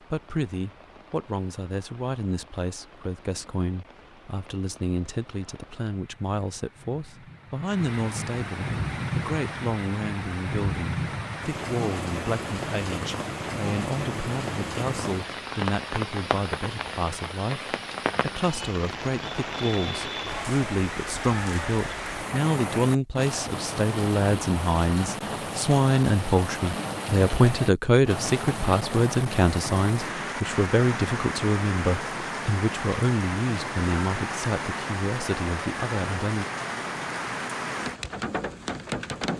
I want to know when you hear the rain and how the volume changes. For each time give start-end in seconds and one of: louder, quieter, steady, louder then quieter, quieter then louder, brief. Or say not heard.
0.0-39.3 louder.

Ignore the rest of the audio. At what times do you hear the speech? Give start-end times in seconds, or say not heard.
0.1-36.5.